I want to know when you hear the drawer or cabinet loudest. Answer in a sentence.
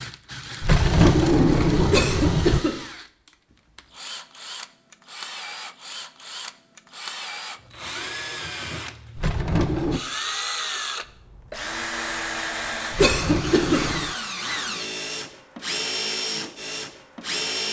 The volume of the drawer or cabinet peaks at 1 second.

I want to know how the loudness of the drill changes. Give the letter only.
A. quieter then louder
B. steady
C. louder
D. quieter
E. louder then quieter
C.